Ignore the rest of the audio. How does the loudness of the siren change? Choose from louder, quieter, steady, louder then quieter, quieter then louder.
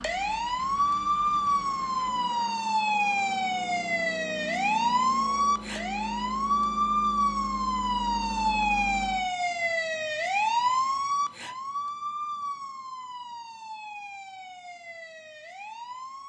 quieter.